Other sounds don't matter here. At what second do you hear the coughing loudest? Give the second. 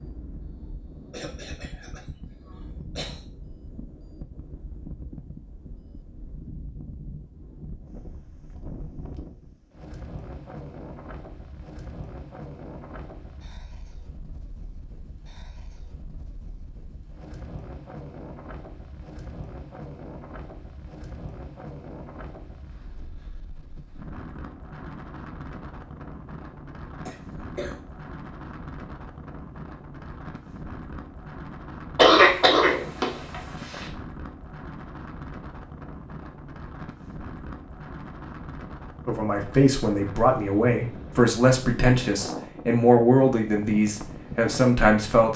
32 s.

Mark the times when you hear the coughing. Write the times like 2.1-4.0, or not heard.
1.1-3.2, 27.1-27.8, 31.9-33.9.